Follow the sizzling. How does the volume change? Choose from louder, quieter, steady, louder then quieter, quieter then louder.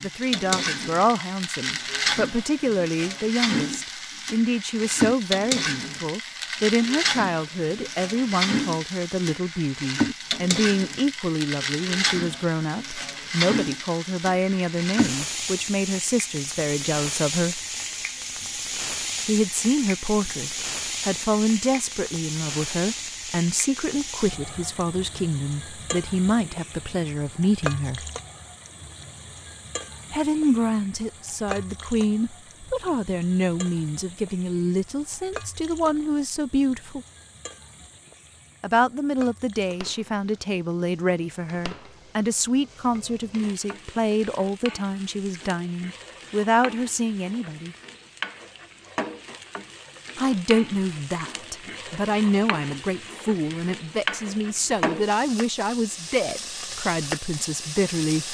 quieter then louder.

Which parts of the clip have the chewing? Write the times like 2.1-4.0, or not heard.
not heard.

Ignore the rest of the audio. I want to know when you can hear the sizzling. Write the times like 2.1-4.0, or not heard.
0.0-58.2.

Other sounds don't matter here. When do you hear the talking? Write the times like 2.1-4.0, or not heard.
0.0-17.6, 19.2-28.1, 30.1-37.0, 38.6-47.8, 50.1-58.2.